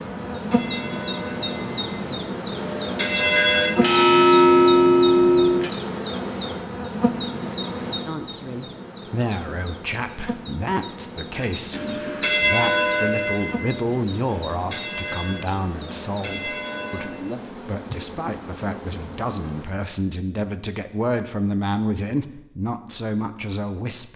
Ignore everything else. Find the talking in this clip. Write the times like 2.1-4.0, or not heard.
8.1-24.1.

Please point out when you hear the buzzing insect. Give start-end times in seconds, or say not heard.
0.0-19.6.